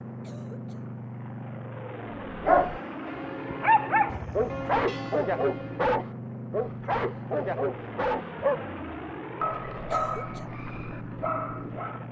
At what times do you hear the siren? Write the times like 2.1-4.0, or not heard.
not heard.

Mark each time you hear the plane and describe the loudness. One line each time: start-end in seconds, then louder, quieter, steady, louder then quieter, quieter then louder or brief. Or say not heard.
0.0-12.0 steady.